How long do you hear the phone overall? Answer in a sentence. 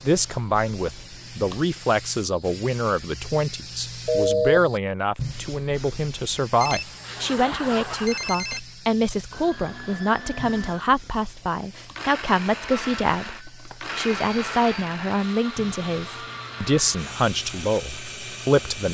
The phone can be heard for 5 seconds in total.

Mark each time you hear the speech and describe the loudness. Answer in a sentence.
The speech can be heard from 0.0 to 18.8 s, at a steady volume.